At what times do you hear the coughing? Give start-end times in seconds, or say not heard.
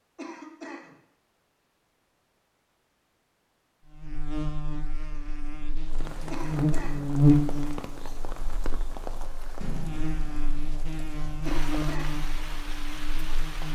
0.1-0.9, 6.3-7.0, 11.4-12.2.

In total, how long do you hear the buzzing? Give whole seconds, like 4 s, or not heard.
10 s.